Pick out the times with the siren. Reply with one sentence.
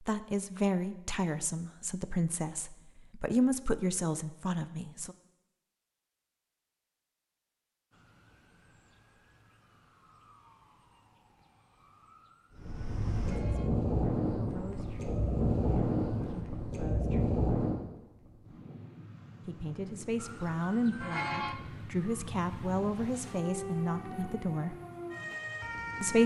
The siren can be heard from 7.9 to 16.4 s and from 20.1 to 26.2 s.